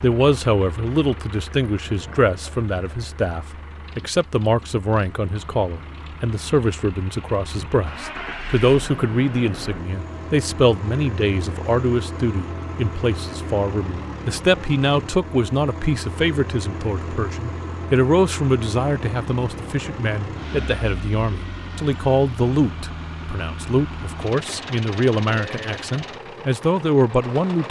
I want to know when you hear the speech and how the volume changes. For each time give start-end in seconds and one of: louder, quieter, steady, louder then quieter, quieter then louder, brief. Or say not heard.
0.0-27.6 steady.